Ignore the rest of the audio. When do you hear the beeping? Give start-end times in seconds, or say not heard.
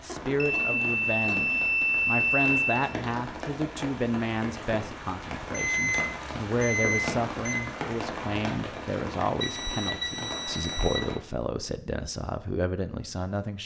0.3-2.8, 5.5-7.5, 9.4-11.0.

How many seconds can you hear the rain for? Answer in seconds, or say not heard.
11 s.